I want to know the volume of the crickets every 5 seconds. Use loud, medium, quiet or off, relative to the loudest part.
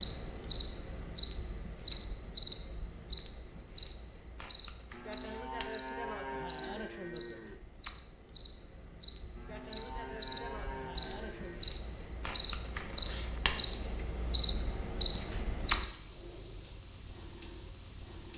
medium, quiet, loud, loud.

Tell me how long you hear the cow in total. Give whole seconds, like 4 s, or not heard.
5 s.